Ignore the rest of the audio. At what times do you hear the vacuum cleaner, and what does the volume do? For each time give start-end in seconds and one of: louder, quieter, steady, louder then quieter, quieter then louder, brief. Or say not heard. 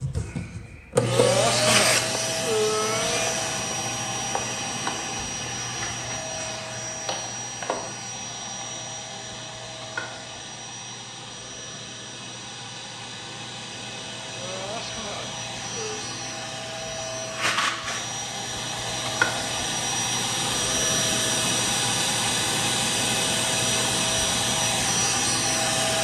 0.0-25.9 quieter then louder.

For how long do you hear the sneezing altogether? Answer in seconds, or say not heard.
4 s.